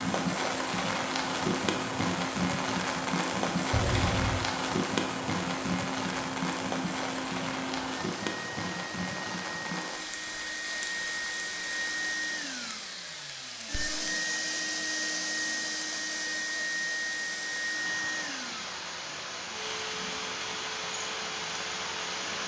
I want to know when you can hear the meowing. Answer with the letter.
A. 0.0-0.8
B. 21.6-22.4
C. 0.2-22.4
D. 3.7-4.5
D.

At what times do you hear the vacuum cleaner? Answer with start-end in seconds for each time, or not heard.
0.2-22.4.